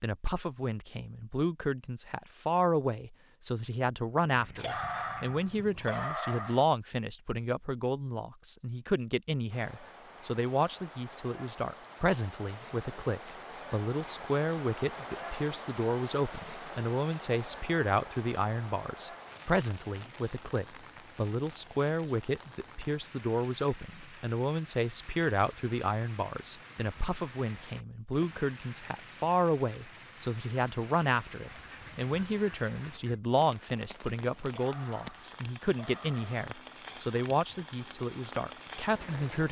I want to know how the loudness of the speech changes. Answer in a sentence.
The loudness of the speech stays about the same.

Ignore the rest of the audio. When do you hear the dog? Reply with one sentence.
You can hear the dog from 4.5 to 6.7 s and from 34.5 to 36.5 s.